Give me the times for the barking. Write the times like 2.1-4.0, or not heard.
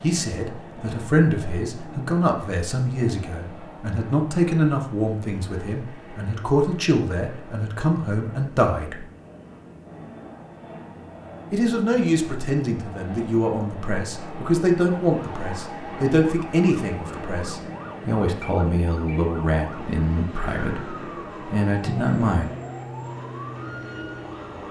not heard.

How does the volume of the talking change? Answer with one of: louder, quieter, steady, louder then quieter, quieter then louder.
steady.